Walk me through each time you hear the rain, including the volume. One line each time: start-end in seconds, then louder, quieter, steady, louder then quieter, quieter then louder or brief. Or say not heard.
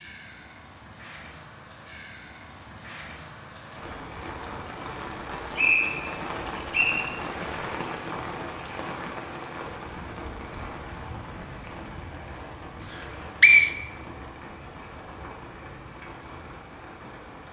0.0-17.4 louder then quieter.